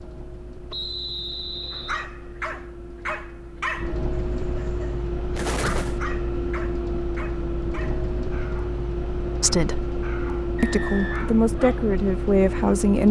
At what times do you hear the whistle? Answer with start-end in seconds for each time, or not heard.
0.7-2.0, 10.6-11.2.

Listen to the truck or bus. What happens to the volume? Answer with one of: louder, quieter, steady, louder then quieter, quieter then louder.
louder.